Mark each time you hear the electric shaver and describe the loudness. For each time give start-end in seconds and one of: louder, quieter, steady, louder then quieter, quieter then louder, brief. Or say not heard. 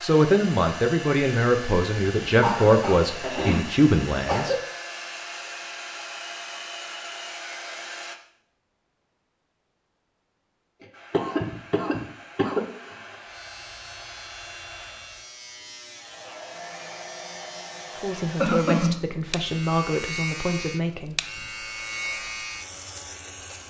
13.1-23.6 louder.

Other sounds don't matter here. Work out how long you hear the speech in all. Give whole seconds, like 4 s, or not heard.
8 s.